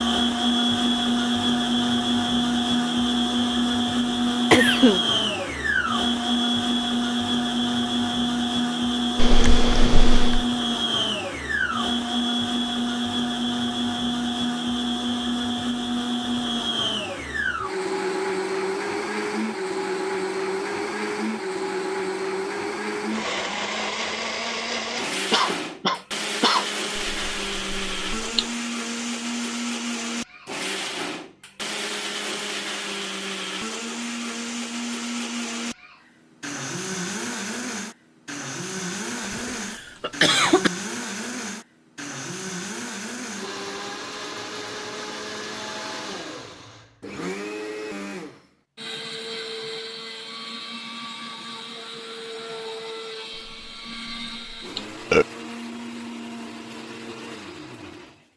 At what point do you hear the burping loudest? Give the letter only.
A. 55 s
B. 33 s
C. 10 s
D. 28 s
A.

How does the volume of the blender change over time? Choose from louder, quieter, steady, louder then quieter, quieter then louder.
quieter.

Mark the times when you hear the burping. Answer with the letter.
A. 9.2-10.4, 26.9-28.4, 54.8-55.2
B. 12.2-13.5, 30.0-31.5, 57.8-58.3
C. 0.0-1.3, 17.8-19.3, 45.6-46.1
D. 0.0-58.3
A.